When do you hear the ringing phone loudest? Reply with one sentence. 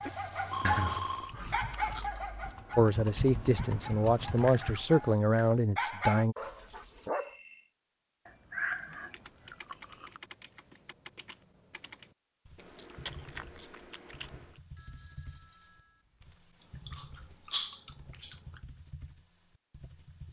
The volume of the ringing phone peaks at 1 second.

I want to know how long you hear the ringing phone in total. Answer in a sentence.
You can hear the ringing phone for 4 seconds altogether.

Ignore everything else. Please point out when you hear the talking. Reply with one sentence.
The talking can be heard from 2.8 to 6.3 s.